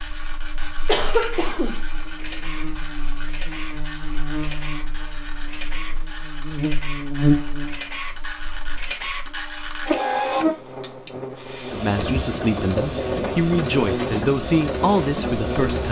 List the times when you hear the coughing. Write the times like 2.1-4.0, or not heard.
0.8-1.8.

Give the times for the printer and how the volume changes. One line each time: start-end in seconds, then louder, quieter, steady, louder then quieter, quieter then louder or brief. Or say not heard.
0.0-15.8 louder.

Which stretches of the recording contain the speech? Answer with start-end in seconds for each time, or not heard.
11.8-15.8.